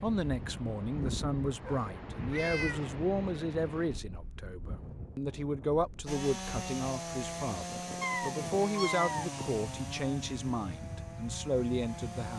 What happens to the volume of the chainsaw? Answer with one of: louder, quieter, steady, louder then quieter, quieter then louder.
quieter.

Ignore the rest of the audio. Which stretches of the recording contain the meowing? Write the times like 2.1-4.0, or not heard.
1.6-2.9, 8.0-9.2.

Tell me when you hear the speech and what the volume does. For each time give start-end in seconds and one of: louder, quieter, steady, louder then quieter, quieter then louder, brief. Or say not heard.
0.0-12.3 steady.